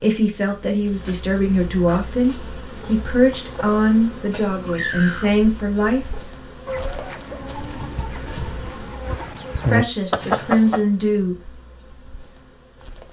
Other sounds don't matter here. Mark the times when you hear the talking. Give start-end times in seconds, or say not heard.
0.0-6.0, 9.7-11.3.